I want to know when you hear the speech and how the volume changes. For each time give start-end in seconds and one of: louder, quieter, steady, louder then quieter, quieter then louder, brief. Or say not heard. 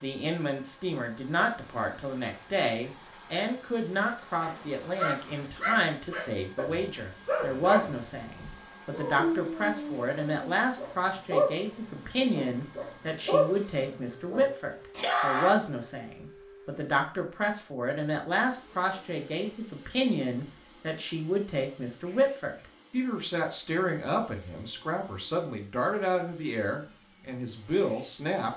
0.0-28.5 steady.